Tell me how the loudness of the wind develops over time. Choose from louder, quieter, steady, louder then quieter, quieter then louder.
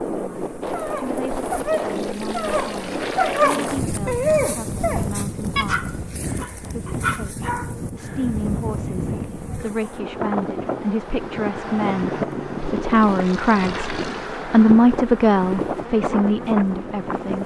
steady.